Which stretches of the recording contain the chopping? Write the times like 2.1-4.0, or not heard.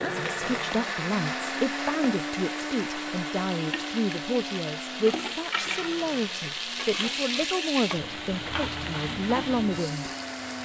not heard.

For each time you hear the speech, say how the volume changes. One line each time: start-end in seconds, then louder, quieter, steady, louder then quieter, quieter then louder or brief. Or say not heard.
0.0-10.1 steady.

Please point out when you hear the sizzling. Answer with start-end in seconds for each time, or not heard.
0.0-10.5.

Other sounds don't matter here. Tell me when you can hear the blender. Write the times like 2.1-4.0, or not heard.
0.0-10.5.